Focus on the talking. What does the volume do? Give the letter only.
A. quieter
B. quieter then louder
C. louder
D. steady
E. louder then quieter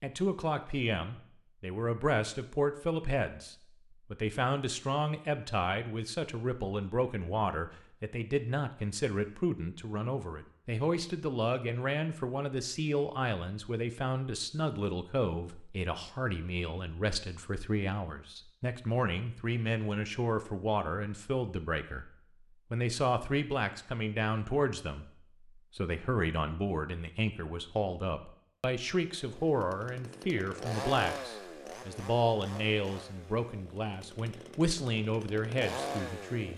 D.